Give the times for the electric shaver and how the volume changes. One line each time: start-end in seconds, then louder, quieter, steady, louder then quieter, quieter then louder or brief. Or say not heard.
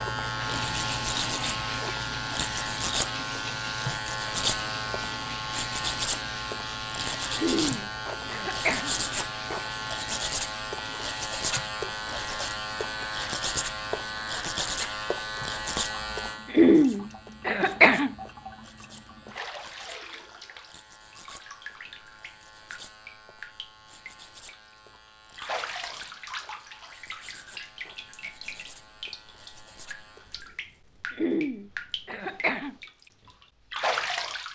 0.0-30.4 quieter.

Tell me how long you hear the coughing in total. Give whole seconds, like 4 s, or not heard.
5 s.